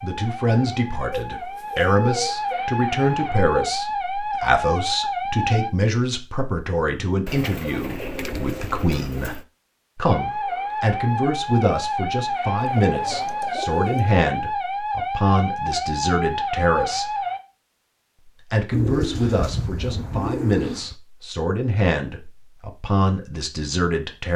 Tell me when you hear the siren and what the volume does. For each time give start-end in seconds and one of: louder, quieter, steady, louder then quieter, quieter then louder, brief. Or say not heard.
0.0-5.7 louder
10.1-17.4 steady.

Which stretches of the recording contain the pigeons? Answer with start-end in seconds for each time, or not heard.
1.1-2.7, 7.2-9.4, 12.6-14.2, 18.7-20.9.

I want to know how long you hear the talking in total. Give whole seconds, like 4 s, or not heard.
23 s.